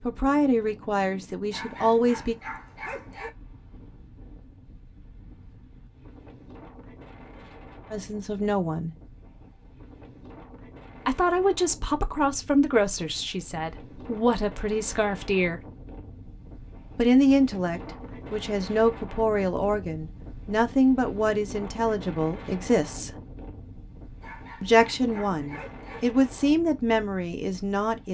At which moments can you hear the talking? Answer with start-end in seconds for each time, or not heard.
0.0-2.4, 7.9-8.9, 11.1-15.6, 16.9-23.1, 24.6-28.0.